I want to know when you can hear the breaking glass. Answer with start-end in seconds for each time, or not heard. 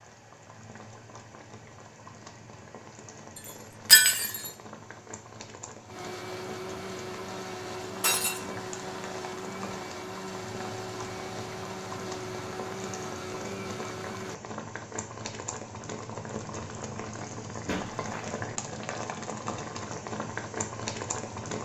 3.9-4.5, 8.0-8.4, 17.6-18.4.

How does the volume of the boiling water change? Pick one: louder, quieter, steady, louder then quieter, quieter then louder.
louder.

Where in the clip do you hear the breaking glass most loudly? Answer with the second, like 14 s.
4 s.